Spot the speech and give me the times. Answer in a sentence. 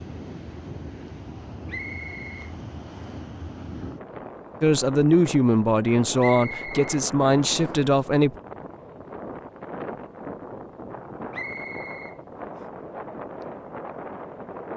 The speech can be heard from 4.6 to 8.3 s.